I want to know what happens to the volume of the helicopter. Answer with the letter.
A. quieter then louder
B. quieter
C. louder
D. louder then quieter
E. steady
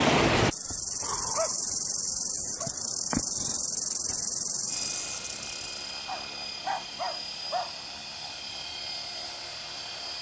E.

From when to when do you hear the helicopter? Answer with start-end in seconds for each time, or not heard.
4.7-10.1.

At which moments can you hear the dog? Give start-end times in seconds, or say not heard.
0.7-2.7, 6.0-7.8.